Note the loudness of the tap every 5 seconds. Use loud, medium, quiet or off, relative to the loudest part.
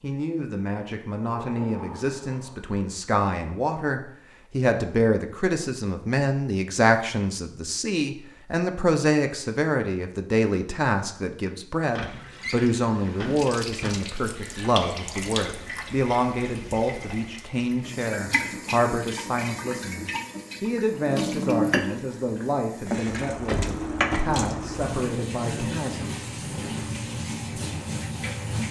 off, off, medium, medium, loud, loud.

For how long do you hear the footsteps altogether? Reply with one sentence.
The footsteps can't be heard in this clip.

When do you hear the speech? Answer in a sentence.
You can hear the speech from 0.0 to 26.1 s.